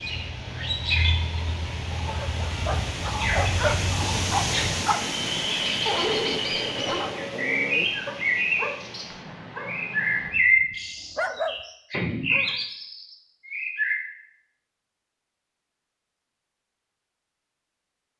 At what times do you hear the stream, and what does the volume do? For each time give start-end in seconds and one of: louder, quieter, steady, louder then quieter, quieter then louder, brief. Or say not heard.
0.0-10.3 louder then quieter.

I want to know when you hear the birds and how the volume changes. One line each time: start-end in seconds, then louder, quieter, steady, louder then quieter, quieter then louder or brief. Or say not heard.
0.0-13.9 louder then quieter.